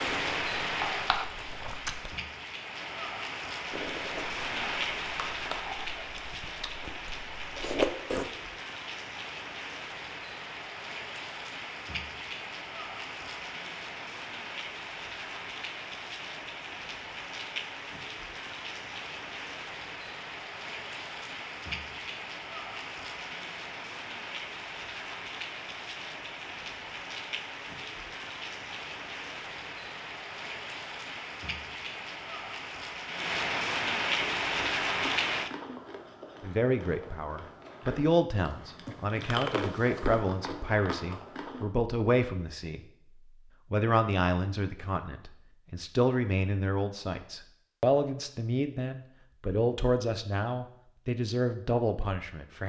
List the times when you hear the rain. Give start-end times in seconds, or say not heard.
0.0-35.5.